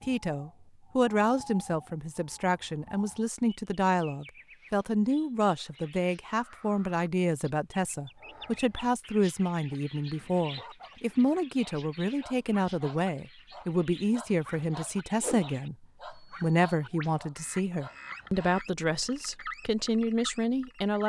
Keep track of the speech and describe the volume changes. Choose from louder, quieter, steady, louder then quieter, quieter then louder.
steady.